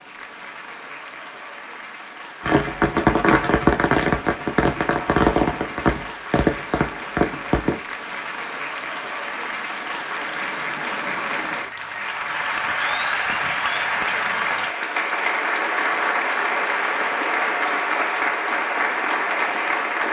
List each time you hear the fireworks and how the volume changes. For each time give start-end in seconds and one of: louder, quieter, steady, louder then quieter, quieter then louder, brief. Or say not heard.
2.4-7.8 quieter.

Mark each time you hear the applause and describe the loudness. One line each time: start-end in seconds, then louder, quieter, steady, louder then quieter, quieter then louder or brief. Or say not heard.
0.0-20.0 louder.